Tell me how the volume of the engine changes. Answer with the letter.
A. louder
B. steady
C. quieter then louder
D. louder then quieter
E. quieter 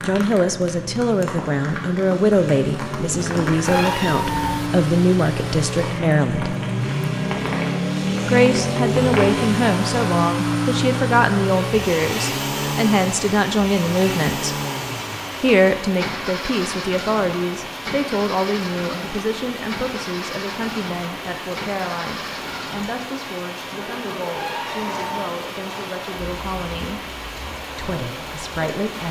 D.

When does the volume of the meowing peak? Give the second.
4 s.